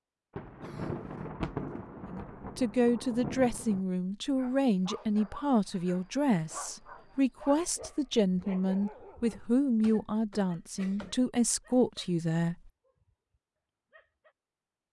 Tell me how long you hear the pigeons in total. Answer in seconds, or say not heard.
not heard.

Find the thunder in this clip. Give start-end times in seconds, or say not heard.
0.3-3.9.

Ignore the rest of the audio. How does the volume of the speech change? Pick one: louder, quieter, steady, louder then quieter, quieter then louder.
steady.